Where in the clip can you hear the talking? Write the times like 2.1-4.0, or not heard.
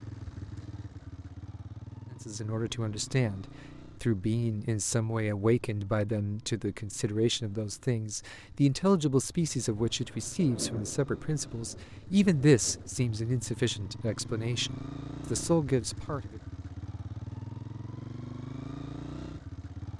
2.1-16.4.